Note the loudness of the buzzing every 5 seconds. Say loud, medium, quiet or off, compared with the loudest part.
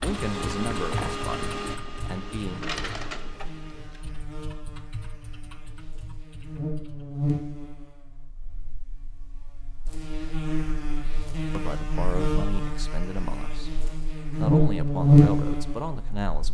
quiet, quiet, medium, loud.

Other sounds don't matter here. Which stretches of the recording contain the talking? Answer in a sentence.
You can hear the talking from 0.0 to 2.6 s and from 11.6 to 16.4 s.